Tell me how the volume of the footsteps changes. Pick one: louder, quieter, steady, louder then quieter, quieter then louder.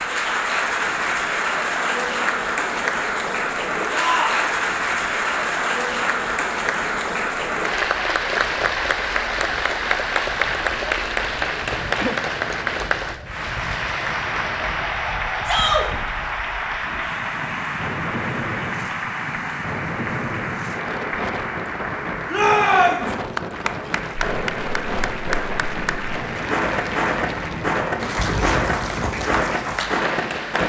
louder.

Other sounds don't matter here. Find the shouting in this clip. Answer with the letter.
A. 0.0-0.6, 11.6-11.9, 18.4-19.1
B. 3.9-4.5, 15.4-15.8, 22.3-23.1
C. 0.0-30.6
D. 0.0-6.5
B.